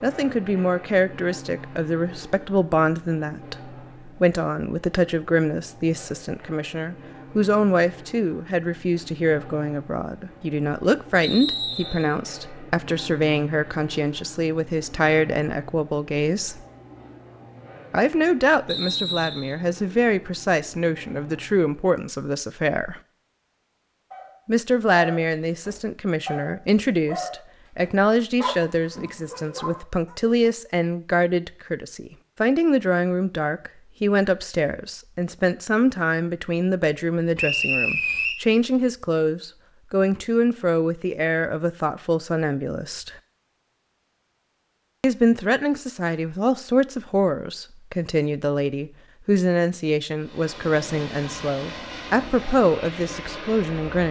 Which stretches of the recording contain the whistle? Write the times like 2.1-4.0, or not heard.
11.2-12.1, 18.6-19.6, 37.4-38.4.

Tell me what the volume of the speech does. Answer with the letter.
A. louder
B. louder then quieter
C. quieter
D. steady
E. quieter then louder
D.